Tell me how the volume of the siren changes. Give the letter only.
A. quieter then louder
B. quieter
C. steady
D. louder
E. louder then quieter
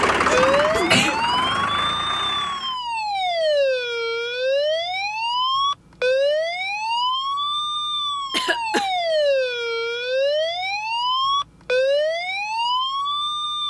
C.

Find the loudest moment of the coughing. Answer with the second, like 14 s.
1 s.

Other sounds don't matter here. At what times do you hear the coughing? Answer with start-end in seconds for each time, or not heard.
0.2-1.2, 8.3-8.9.